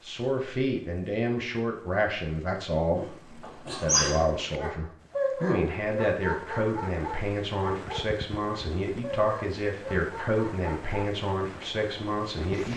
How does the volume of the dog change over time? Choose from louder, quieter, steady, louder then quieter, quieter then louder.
quieter.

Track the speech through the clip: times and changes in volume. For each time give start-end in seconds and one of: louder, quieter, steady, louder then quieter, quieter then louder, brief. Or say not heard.
0.0-12.7 steady.